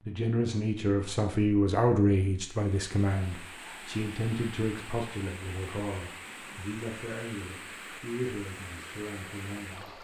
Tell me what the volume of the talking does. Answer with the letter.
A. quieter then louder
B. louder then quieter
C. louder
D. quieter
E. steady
D.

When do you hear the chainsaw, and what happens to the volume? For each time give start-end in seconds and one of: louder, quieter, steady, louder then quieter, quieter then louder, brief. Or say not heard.
not heard.